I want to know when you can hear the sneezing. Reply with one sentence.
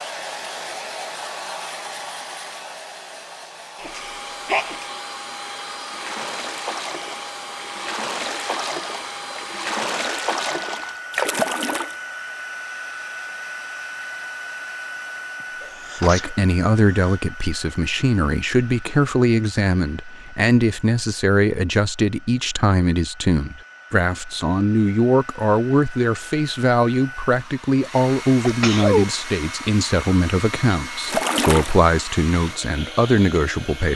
You can hear the sneezing from 3.8 to 4.8 s, from 15.4 to 17.2 s and from 28.4 to 29.1 s.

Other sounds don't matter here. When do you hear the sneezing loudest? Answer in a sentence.
The volume of the sneezing peaks at 29 seconds.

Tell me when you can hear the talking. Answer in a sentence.
The talking can be heard from 16.0 to 33.9 s.